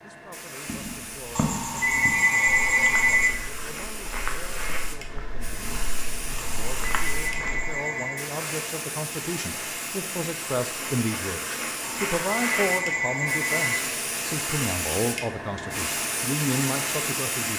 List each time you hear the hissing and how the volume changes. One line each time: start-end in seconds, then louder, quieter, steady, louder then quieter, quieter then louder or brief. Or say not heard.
0.0-17.5 louder.